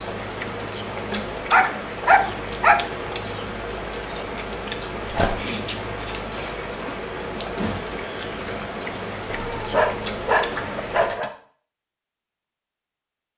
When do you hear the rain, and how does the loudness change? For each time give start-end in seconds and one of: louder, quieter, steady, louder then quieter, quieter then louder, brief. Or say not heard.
0.0-11.2 steady.